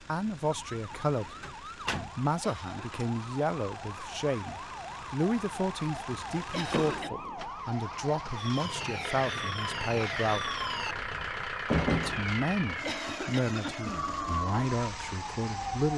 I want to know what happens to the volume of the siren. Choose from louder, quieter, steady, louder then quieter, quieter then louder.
louder.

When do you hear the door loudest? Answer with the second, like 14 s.
12 s.